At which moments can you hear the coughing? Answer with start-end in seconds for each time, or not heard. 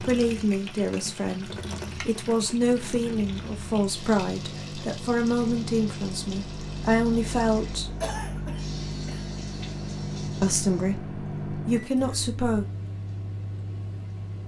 8.0-9.3.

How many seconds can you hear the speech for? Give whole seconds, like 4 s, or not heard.
10 s.